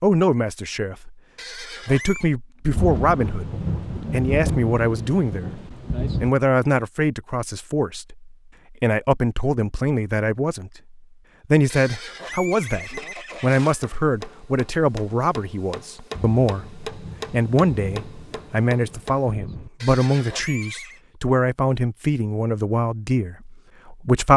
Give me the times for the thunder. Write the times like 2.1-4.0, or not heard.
2.7-6.3, 16.1-19.7.